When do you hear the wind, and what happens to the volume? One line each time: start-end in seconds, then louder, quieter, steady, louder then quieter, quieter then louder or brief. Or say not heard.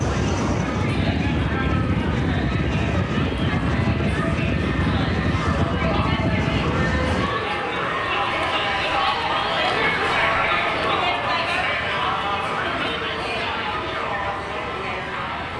0.0-15.5 quieter.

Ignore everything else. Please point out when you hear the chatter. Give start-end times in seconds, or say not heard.
0.0-15.5.